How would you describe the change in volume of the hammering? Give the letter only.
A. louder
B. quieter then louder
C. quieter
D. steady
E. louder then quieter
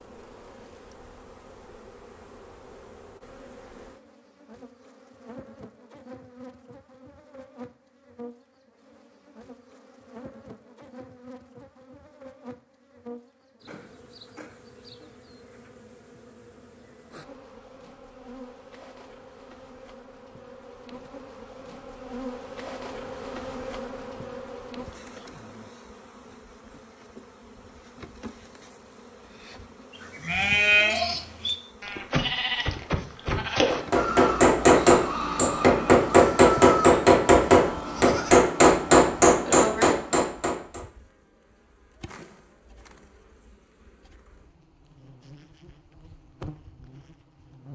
D.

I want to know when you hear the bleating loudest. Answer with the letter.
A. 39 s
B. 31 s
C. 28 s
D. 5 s
B.